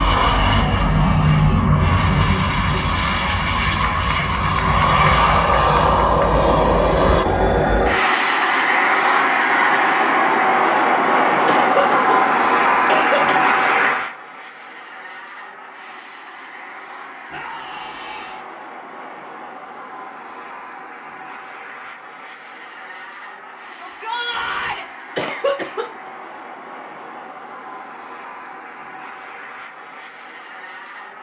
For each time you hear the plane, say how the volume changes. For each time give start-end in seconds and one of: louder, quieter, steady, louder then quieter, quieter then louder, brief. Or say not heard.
0.0-31.1 quieter.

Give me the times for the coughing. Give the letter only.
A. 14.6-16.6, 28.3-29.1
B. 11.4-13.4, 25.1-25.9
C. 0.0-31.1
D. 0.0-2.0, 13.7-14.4
B.